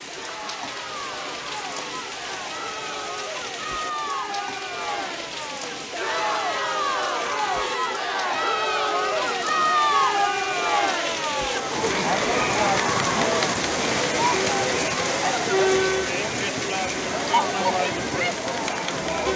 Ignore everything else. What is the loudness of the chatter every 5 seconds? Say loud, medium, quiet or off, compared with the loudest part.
medium, loud, loud, loud.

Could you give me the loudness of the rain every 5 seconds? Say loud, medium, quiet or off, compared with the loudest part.
medium, medium, loud, loud.